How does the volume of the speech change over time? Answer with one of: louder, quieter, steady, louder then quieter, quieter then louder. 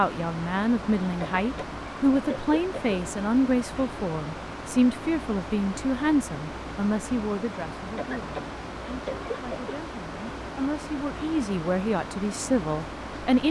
quieter then louder.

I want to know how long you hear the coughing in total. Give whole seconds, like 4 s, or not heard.
4 s.